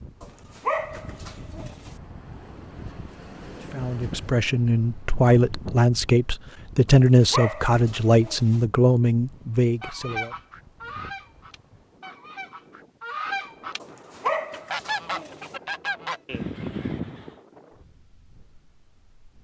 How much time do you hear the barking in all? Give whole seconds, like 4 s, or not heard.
5 s.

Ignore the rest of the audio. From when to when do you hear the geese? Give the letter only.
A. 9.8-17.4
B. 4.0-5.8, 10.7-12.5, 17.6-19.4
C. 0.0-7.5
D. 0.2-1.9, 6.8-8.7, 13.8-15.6
A.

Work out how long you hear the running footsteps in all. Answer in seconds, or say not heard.
not heard.